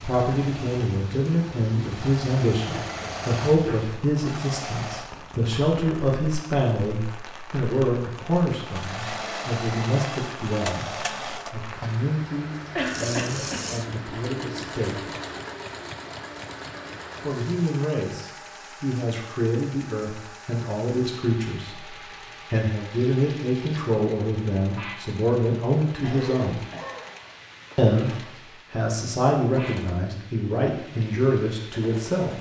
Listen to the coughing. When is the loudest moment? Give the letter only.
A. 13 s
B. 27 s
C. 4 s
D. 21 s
A.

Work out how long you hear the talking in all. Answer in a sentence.
The talking can be heard for 29 seconds in total.